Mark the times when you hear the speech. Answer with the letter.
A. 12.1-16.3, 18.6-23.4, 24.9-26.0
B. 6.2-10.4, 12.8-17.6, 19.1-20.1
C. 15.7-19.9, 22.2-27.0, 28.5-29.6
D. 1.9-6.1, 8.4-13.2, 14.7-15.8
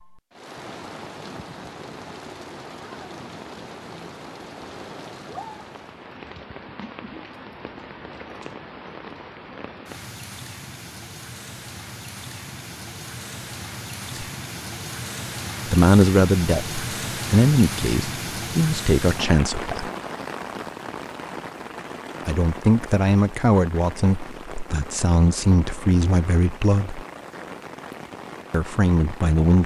C.